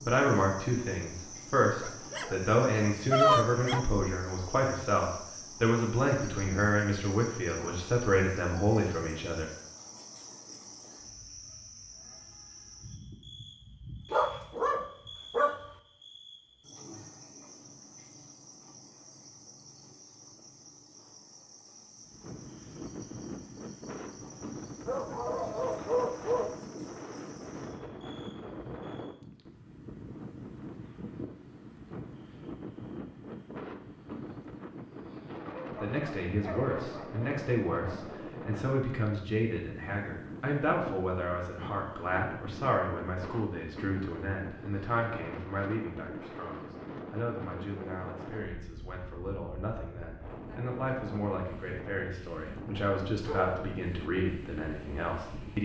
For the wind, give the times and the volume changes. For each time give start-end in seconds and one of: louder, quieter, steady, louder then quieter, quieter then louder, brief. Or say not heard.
21.9-55.6 steady.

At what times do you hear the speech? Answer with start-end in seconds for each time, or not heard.
0.0-9.5, 35.7-55.6.